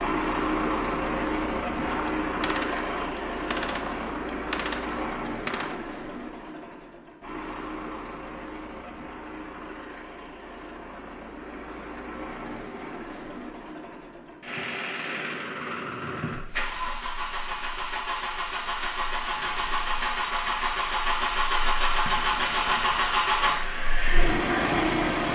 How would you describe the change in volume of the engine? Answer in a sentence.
The loudness of the engine goes down, then up.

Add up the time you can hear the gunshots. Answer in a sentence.
The gunshots can be heard for 4 seconds in total.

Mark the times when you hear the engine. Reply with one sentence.
The engine can be heard from 0.0 to 25.2 s.